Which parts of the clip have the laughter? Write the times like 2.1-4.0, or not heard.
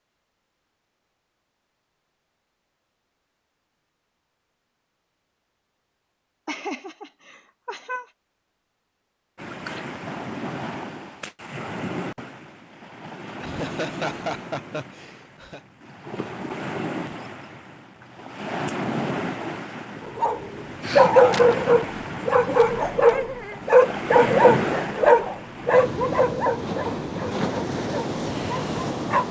6.5-8.1, 13.4-15.6, 23.1-23.6.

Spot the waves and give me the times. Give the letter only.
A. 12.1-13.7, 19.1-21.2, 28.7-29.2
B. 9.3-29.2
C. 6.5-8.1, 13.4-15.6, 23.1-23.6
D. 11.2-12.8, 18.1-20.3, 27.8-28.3
B.